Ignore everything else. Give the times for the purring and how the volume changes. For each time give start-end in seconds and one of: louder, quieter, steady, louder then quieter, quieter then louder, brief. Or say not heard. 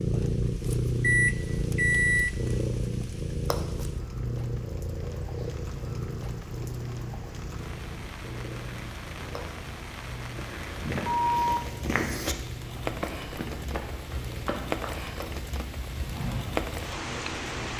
0.0-17.7 quieter.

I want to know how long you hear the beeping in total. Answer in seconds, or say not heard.
2 s.